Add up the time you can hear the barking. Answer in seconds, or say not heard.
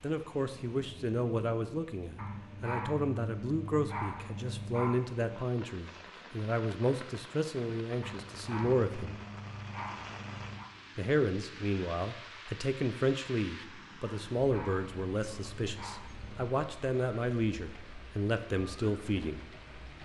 8 s.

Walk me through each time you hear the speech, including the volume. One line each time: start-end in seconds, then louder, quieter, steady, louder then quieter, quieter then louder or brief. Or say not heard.
0.0-9.2 steady
10.9-19.4 steady.